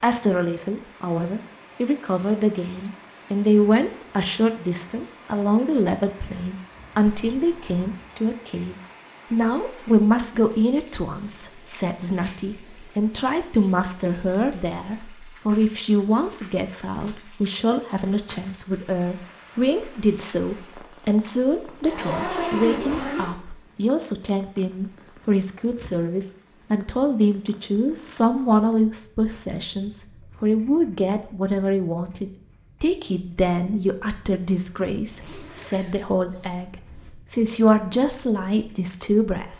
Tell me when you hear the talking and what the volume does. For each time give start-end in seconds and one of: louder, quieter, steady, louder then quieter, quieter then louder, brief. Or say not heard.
0.0-39.5 steady.